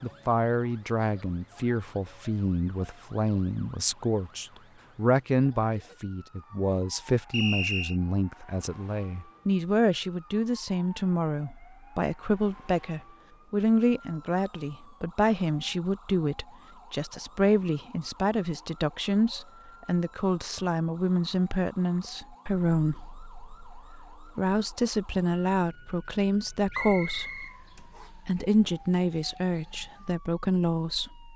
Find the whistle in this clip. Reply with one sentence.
You can hear the whistle from 7.3 to 8.0 s and from 26.7 to 28.1 s.